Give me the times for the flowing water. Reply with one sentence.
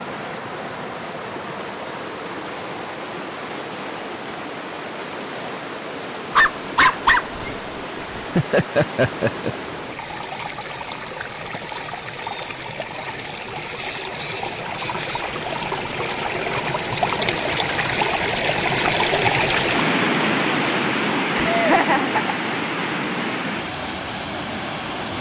You can hear the flowing water from 0.0 to 25.1 s.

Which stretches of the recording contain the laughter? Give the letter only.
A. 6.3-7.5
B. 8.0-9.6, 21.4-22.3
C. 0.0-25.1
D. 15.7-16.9
B.